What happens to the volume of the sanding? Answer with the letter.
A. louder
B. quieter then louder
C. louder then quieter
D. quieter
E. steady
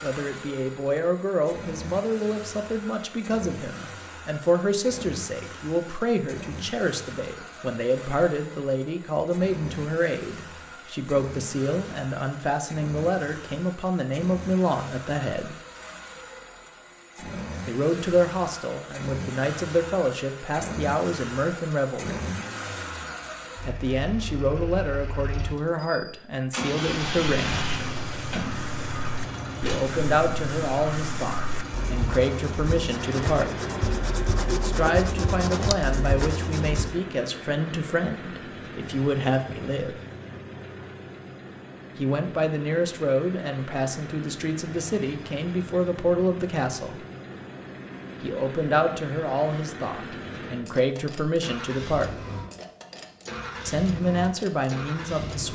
A.